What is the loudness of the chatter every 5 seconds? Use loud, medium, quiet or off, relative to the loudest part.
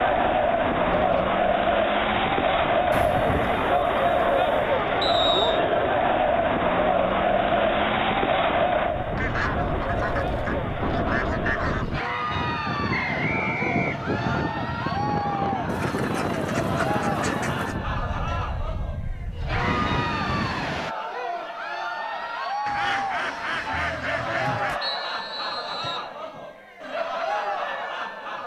loud, loud, medium, medium, medium, medium.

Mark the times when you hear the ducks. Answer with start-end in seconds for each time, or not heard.
2.9-4.7, 9.2-12.0, 15.7-17.8, 22.6-24.8.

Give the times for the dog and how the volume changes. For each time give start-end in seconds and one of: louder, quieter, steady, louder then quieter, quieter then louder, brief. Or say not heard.
not heard.